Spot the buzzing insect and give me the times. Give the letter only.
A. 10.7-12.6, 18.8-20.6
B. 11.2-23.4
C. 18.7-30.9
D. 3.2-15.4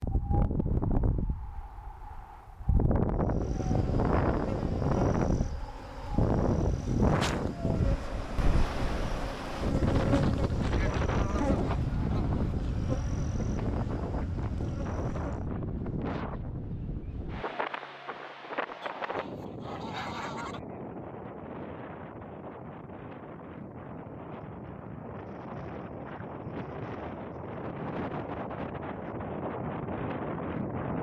D.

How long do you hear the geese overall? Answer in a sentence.
The geese can be heard for 4 seconds in total.